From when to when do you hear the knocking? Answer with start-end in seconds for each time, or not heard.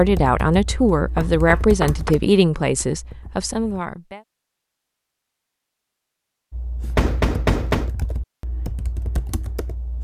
1.1-2.1, 7.0-8.0.